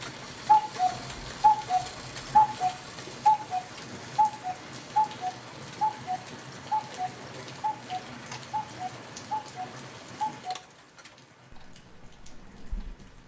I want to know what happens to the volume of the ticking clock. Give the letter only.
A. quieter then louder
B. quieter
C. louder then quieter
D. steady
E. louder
B.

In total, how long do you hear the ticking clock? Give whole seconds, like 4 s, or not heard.
13 s.